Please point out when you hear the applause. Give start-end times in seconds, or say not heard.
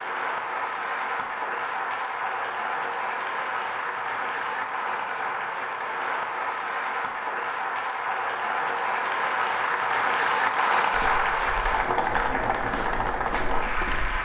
0.0-14.1.